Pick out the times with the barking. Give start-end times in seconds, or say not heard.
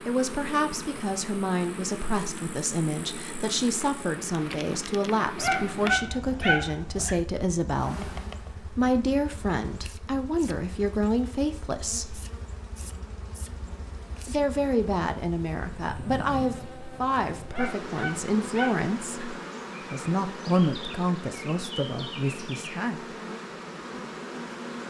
5.3-7.2, 17.5-19.2.